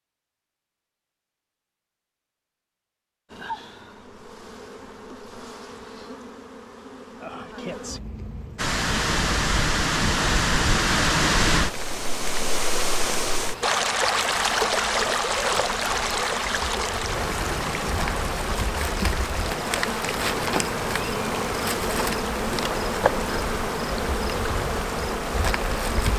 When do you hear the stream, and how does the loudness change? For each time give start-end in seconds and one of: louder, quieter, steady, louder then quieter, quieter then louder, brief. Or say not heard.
8.6-26.1 quieter.